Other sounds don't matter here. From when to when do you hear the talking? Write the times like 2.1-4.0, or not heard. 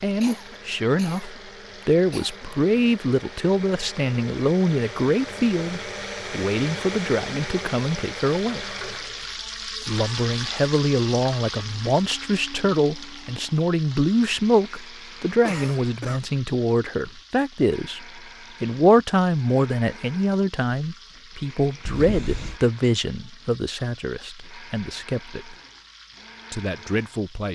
0.0-8.8, 9.8-25.6, 26.5-27.5.